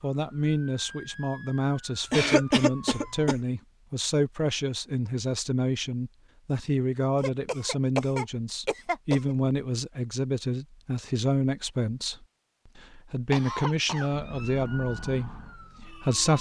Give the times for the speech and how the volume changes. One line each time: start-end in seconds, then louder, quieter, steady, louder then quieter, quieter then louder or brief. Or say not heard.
0.0-16.3 steady.